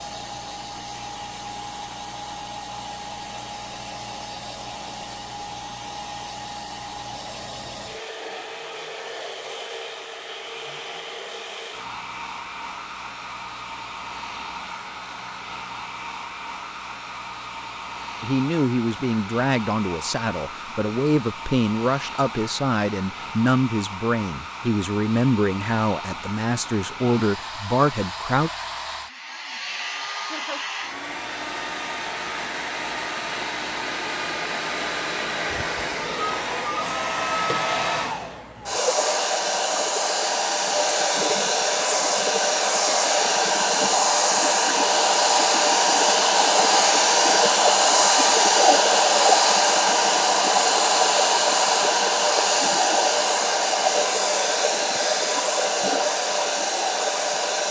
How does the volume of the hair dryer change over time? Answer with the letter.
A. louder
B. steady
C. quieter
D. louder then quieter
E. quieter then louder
A.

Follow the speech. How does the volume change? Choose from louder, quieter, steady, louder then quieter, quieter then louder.
steady.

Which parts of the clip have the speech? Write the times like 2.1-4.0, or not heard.
18.2-28.5.